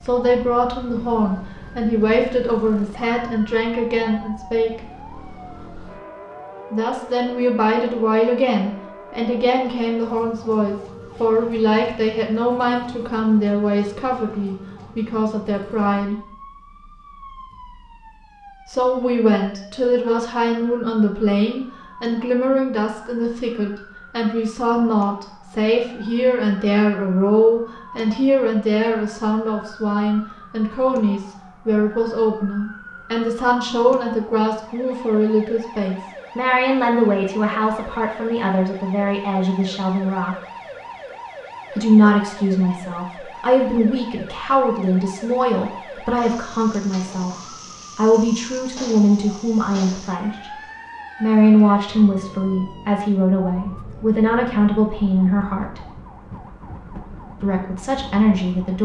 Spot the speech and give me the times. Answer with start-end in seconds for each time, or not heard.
0.0-4.8, 6.7-16.2, 18.6-40.4, 41.7-50.6, 51.2-55.8, 57.4-58.7.